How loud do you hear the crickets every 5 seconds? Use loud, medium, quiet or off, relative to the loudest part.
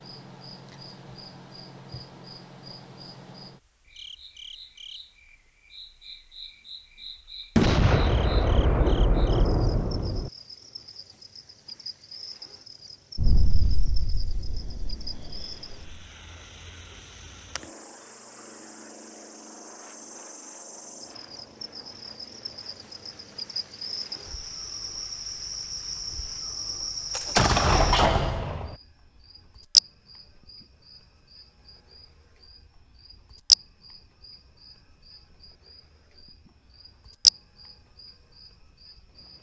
quiet, quiet, quiet, quiet, quiet, loud, loud, loud.